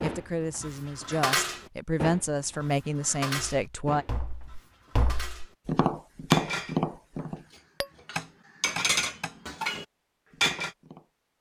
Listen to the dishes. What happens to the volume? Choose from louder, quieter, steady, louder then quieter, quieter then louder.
quieter then louder.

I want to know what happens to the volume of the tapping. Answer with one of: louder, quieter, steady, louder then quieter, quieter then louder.
louder then quieter.